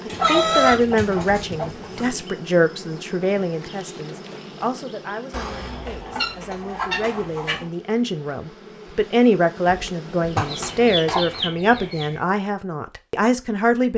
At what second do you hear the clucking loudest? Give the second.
1 s.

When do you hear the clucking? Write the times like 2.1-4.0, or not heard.
0.1-2.1, 5.3-7.7, 10.3-12.2.